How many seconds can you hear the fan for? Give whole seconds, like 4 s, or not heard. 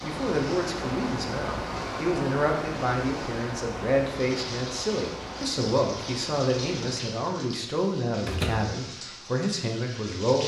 7 s.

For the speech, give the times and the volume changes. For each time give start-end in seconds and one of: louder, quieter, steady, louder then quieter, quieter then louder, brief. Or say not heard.
0.0-10.4 steady.